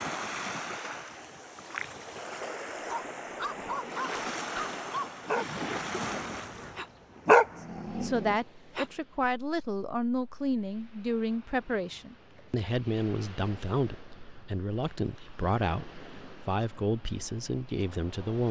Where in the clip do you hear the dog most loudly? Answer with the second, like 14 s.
7 s.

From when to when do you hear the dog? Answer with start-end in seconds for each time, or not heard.
2.9-8.8.